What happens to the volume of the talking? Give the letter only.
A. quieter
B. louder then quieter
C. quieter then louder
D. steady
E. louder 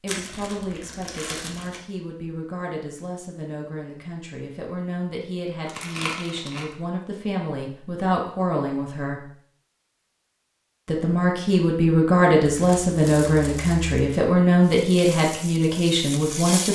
E.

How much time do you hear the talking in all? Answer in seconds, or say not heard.
15 s.